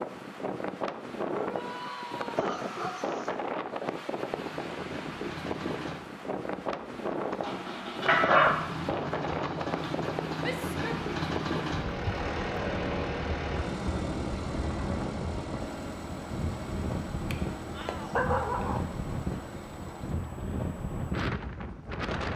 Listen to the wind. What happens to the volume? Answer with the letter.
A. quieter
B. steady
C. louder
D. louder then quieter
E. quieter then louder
B.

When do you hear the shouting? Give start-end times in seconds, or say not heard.
1.4-2.6, 10.4-11.1, 17.7-18.2.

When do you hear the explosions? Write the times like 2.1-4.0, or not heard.
not heard.